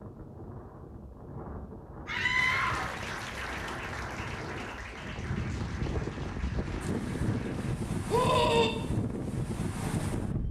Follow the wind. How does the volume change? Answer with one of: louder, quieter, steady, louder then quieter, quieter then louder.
louder.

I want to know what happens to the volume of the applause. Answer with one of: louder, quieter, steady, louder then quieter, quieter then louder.
quieter.